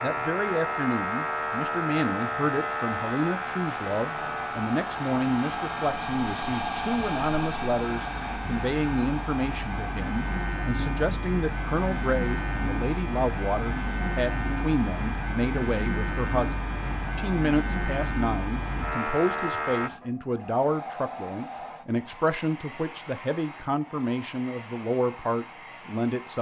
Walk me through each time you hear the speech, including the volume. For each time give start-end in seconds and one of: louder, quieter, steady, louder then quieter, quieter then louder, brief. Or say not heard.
0.0-16.6 steady
17.1-26.3 steady.